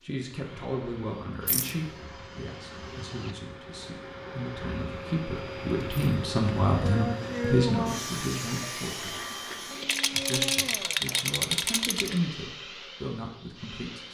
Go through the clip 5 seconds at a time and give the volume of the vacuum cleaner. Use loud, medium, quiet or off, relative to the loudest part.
medium, loud, medium.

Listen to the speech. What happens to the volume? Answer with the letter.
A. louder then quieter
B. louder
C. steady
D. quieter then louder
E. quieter
A.